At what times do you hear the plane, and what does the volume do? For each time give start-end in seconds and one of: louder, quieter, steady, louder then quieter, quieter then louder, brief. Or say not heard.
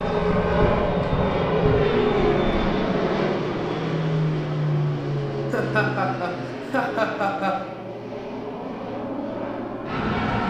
0.0-10.4 quieter.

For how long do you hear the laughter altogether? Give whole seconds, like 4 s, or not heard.
2 s.